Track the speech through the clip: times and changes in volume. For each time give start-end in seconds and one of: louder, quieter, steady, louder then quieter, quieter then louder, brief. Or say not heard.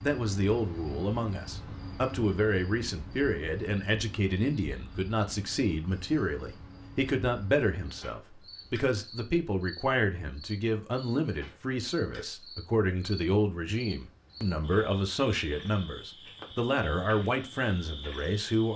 0.0-18.7 steady.